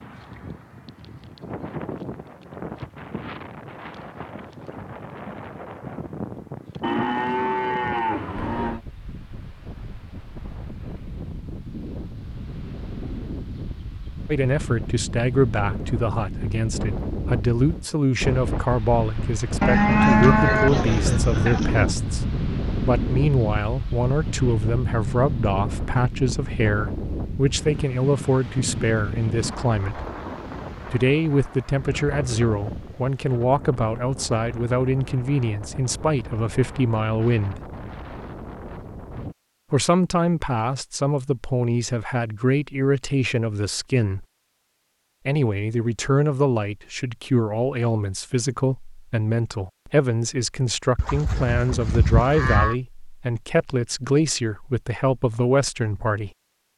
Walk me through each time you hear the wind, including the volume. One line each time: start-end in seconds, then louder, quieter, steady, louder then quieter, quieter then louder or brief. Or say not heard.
0.0-39.4 louder then quieter.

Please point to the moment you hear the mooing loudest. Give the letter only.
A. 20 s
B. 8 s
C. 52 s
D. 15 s
A.